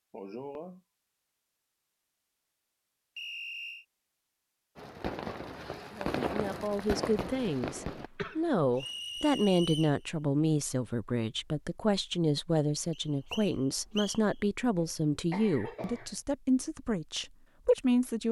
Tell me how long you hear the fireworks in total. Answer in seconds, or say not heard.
3 s.